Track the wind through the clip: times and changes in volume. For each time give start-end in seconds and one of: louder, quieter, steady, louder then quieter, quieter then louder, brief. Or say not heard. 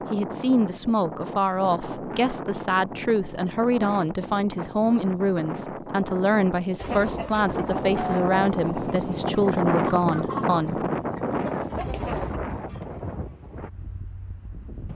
0.0-14.9 louder then quieter.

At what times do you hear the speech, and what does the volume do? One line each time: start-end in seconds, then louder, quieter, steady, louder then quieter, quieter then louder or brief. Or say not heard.
0.1-10.8 steady.